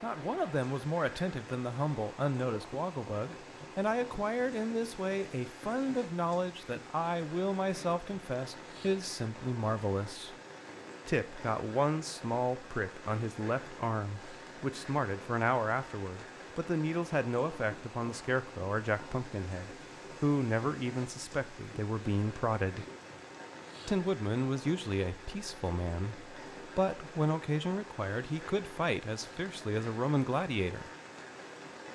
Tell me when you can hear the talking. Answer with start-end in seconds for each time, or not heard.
0.0-10.3, 11.1-22.9, 23.9-30.9.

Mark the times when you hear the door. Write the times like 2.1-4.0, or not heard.
not heard.